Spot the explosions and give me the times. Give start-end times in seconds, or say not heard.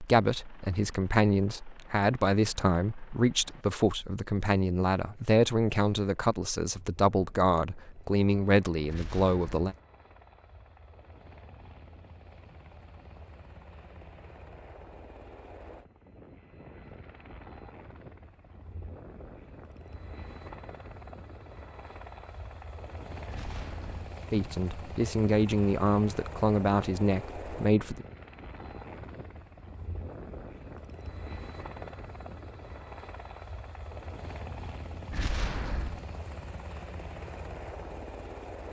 8.8-9.8, 23.2-24.1, 35.1-36.0.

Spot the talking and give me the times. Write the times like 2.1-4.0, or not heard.
0.0-9.8, 24.3-28.1.